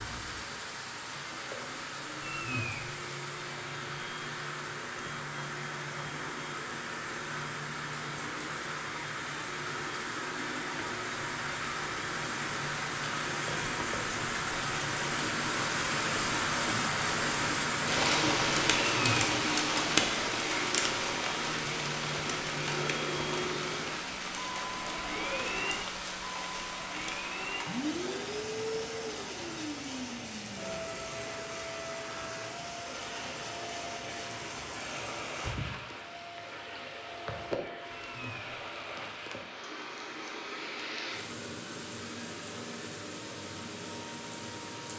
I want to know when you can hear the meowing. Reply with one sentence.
You can hear the meowing from 2.2 to 2.9 s, from 18.9 to 19.4 s and from 37.9 to 38.6 s.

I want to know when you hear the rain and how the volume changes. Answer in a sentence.
The rain can be heard from 0.0 to 44.9 s, getting louder then quieter.